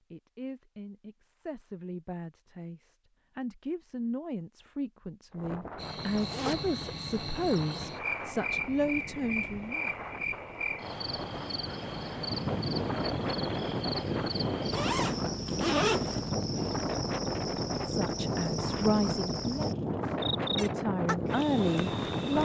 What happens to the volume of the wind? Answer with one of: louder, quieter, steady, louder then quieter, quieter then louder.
louder.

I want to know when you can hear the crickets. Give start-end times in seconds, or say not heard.
5.8-22.4.